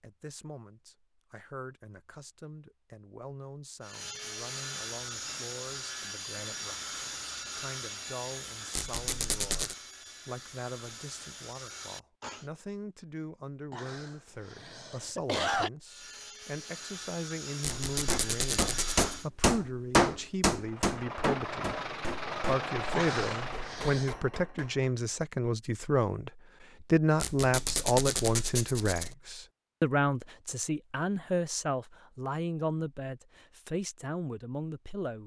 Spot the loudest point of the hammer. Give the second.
20 s.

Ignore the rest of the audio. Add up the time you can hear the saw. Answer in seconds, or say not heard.
12 s.